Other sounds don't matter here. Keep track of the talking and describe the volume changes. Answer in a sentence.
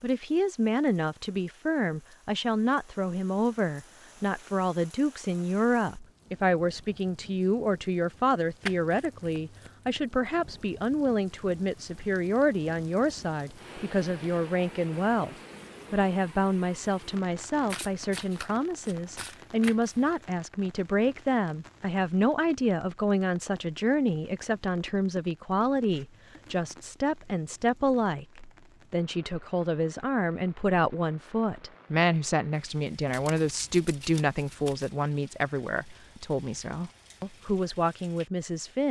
The volume of the talking stays about the same.